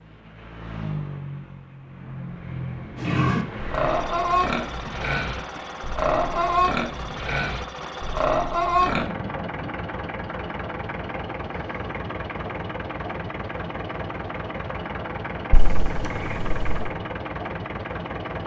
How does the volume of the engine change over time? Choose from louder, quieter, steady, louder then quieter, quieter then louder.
steady.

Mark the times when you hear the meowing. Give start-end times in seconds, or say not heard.
15.5-16.9.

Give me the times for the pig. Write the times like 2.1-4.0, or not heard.
3.0-9.1.